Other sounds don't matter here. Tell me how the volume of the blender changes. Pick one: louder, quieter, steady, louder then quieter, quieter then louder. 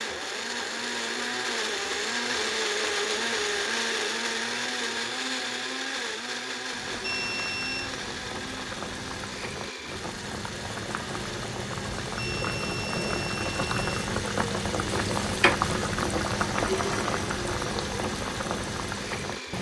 quieter.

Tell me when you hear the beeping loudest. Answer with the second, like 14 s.
7 s.